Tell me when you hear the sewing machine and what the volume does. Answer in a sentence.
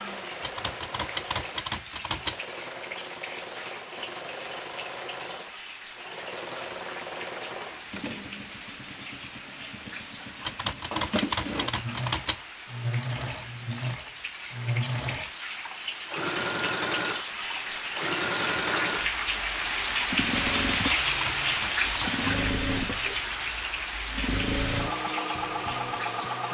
You can hear the sewing machine from 0.0 to 26.4 s, getting louder.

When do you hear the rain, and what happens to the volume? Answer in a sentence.
The rain can be heard from 0.0 to 26.4 s, getting louder.